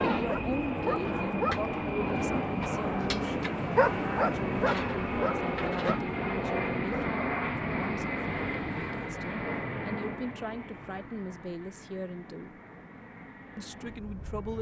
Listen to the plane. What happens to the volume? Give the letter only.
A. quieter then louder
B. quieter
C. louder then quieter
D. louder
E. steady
B.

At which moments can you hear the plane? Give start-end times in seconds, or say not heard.
0.0-14.5.